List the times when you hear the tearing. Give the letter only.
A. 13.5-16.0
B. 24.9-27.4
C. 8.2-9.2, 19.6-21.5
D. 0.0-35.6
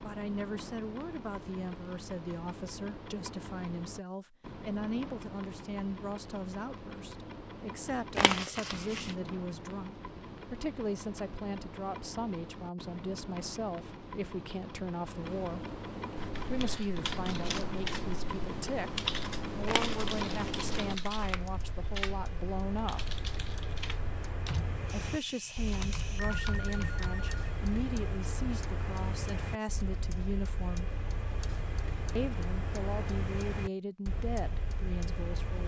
C.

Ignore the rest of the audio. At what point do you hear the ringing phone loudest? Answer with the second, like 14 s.
26 s.